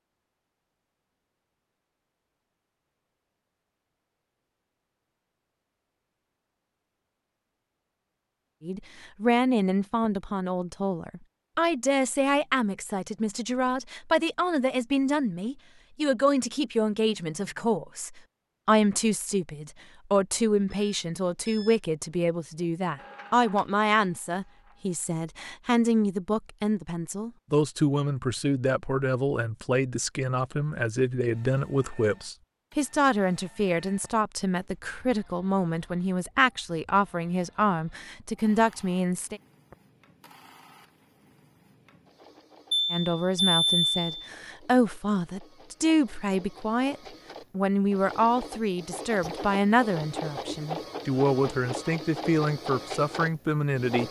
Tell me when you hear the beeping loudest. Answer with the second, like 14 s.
44 s.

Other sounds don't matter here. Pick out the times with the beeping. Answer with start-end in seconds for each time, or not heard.
20.7-21.8, 42.7-44.3.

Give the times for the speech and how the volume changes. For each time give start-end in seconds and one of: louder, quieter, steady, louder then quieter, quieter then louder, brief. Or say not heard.
8.6-39.4 steady
42.9-54.0 steady.